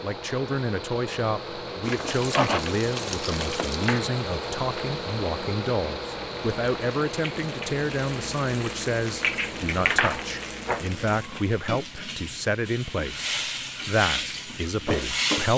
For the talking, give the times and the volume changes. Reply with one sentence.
The talking can be heard from 0.0 to 15.5 s, at a steady volume.